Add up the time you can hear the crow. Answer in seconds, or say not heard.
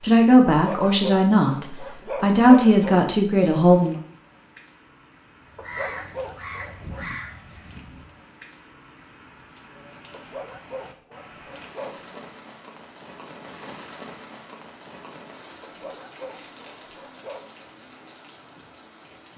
3 s.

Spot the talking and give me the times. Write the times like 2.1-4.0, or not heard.
0.0-4.0.